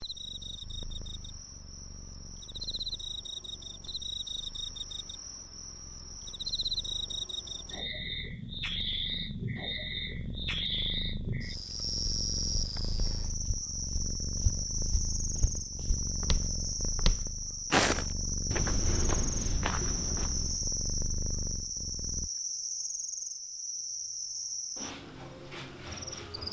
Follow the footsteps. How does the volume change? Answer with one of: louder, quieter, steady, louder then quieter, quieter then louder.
louder then quieter.